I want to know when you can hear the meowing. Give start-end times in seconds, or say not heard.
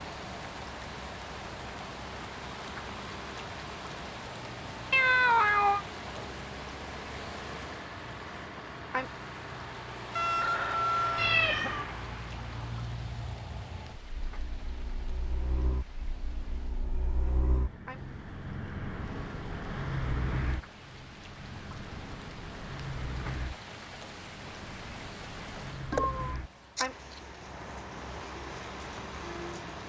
4.9-5.8, 11.2-11.8, 25.9-27.2.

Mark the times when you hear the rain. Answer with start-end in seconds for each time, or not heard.
0.0-29.8.